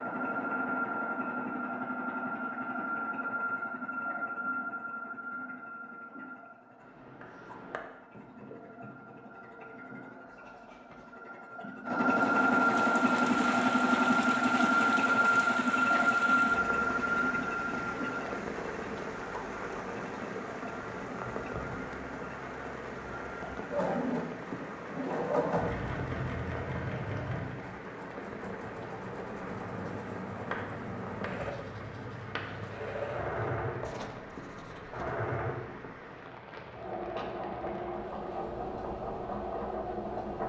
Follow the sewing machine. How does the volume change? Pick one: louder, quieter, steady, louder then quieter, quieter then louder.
louder then quieter.